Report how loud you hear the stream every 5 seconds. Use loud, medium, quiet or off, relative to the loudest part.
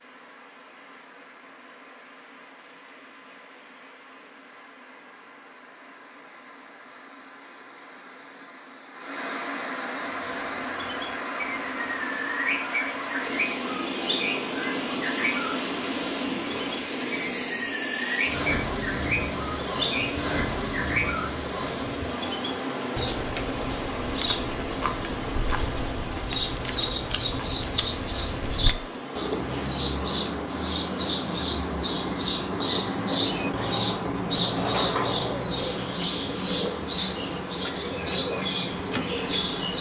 quiet, medium, loud, loud, loud, medium, medium, medium.